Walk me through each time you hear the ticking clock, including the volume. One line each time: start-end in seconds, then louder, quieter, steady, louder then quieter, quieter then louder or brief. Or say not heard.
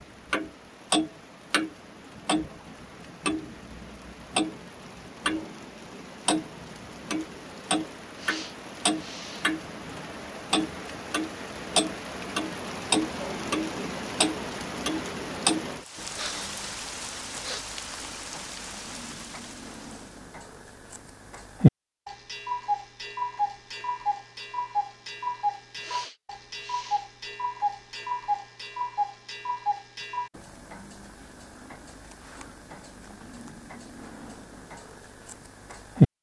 0.3-5.5 quieter then louder
6.2-36.1 quieter.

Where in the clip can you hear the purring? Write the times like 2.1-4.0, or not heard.
not heard.